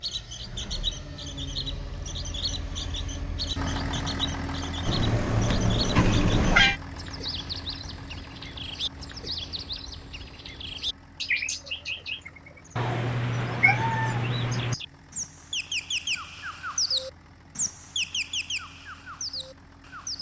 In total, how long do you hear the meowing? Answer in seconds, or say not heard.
4 s.